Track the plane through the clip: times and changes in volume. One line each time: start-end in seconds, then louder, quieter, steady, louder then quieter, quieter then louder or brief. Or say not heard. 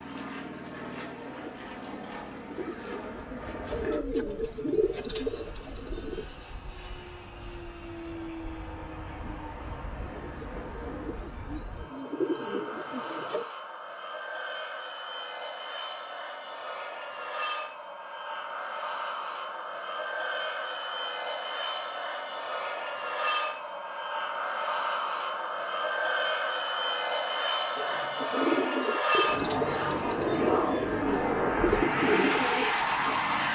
0.0-33.5 louder.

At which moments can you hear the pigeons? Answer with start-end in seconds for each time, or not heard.
0.8-6.2, 10.0-13.4, 27.8-33.2.